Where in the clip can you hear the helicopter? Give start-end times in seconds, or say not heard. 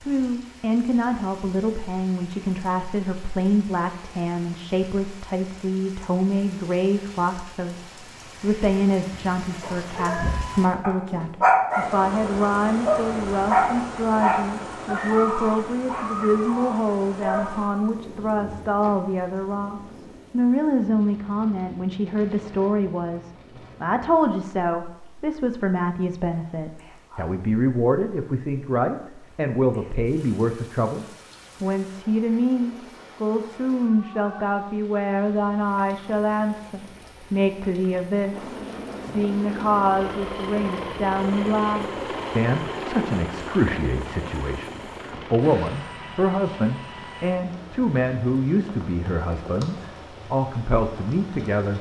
38.3-51.7.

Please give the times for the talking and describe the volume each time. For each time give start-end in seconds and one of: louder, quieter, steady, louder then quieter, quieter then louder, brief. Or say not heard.
0.0-51.7 steady.